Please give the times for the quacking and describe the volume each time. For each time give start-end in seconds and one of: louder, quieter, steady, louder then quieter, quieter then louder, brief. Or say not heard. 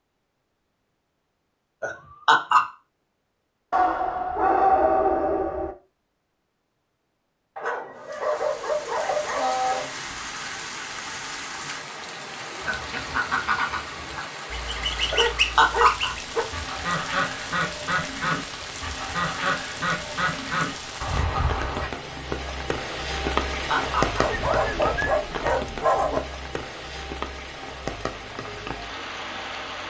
12.6-21.9 steady.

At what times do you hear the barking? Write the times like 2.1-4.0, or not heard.
3.7-5.8, 7.5-9.9, 15.2-16.4, 24.2-26.2.